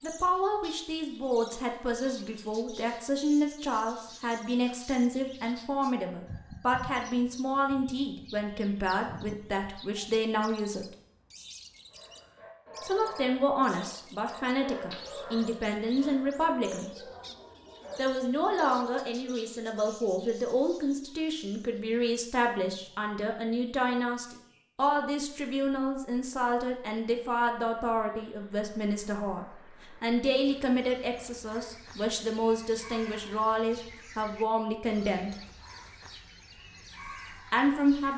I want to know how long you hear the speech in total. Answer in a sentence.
You can hear the speech for 33 seconds altogether.